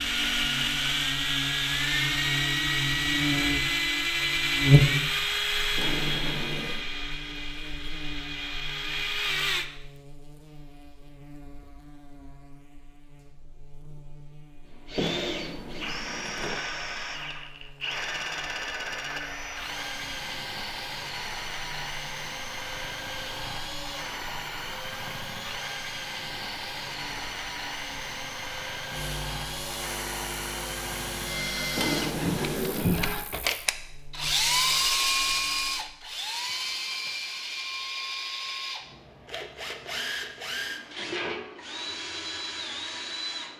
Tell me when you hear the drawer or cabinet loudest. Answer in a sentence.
The loudest moment of the drawer or cabinet is at 32 seconds.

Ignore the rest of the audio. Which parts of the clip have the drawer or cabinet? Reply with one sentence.
The drawer or cabinet can be heard from 5.8 to 6.8 s, from 15.0 to 16.6 s and from 31.8 to 33.0 s.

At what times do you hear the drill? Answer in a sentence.
The drill can be heard from 0.0 to 9.7 s and from 14.7 to 43.5 s.